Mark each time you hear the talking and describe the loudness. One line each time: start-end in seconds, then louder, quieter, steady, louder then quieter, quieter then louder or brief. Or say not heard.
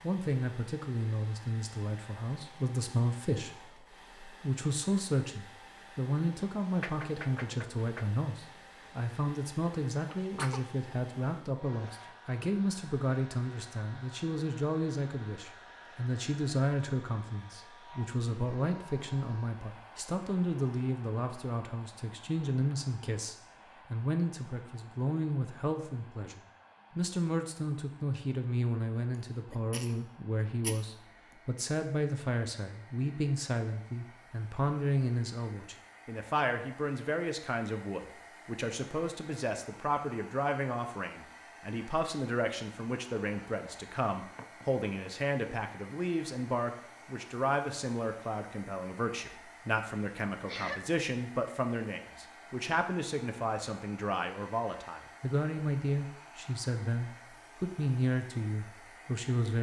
0.0-59.5 steady.